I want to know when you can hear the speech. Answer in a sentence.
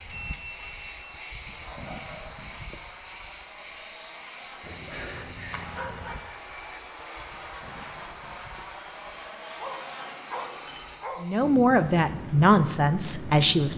You can hear the speech from 11.2 to 13.7 s.